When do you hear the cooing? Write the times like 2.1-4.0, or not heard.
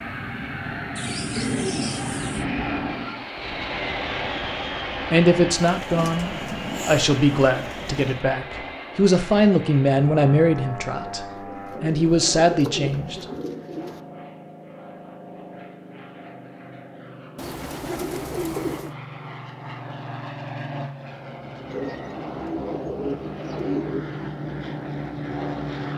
0.9-2.5, 5.7-8.2, 11.1-14.0, 17.4-18.9, 21.7-24.1.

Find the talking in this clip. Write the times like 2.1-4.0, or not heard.
5.1-13.2.